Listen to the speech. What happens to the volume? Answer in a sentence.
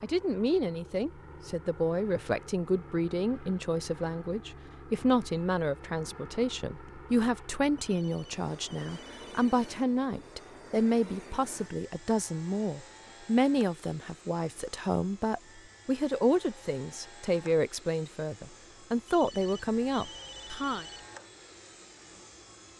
The loudness of the speech stays about the same.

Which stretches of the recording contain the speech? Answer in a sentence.
You can hear the speech from 0.0 to 20.9 s.